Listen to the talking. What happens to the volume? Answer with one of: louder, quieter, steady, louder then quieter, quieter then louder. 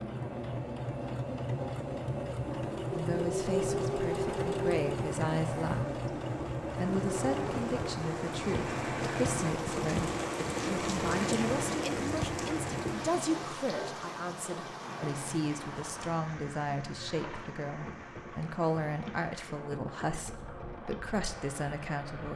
steady.